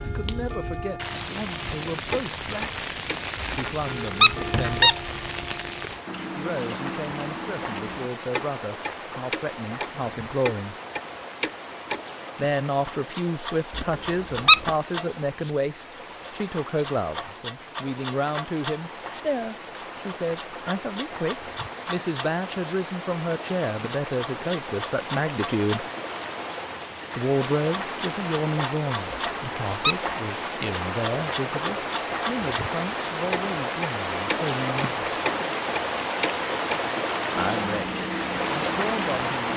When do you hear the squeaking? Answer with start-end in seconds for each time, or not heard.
3.5-5.0, 13.8-14.7, 29.1-30.1.